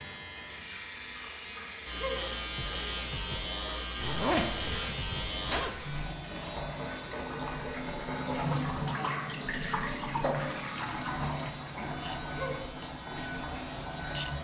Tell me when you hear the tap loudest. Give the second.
9 s.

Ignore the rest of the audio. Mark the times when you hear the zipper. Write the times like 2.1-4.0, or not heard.
4.0-6.0.